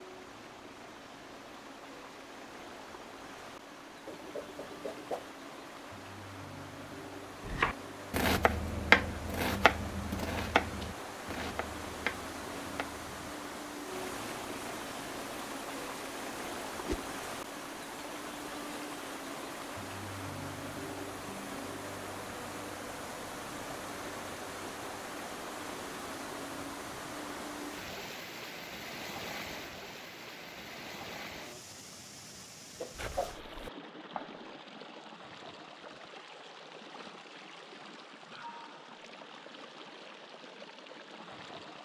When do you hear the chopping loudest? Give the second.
9 s.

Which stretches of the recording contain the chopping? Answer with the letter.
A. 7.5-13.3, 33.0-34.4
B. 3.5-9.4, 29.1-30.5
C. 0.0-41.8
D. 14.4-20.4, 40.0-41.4
A.